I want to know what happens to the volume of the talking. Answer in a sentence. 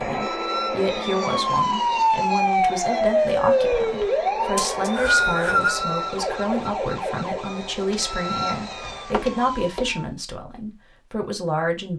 The volume of the talking stays about the same.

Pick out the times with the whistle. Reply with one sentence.
You can hear the whistle from 4.5 to 5.8 s.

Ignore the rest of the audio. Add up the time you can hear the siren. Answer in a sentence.
The siren can be heard for 10 seconds in total.